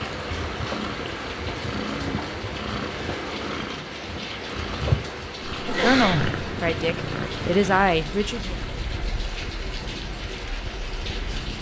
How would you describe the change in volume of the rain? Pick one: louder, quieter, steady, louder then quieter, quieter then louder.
steady.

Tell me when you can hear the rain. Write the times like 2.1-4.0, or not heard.
0.0-11.5.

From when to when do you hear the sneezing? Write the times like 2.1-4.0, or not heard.
5.5-6.5.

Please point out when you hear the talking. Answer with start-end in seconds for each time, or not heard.
5.8-8.6.